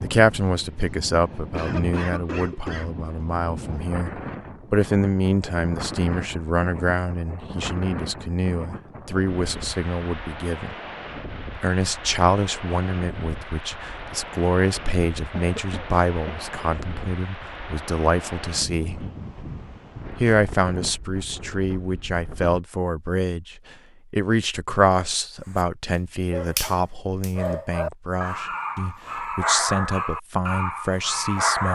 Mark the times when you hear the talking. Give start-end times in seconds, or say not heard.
0.0-10.8, 11.6-19.1, 20.2-31.6.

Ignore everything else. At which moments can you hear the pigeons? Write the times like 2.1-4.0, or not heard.
not heard.